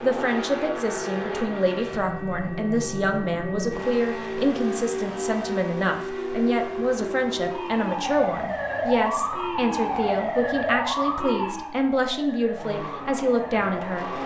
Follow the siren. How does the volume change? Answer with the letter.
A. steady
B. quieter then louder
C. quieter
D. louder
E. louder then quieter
E.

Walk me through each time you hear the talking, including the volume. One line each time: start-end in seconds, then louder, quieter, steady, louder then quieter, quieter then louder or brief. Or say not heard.
0.0-14.2 steady.